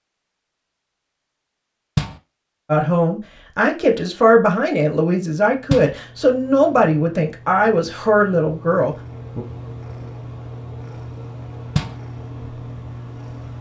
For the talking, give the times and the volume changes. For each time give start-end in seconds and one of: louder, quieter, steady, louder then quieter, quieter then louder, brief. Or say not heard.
2.6-9.4 steady.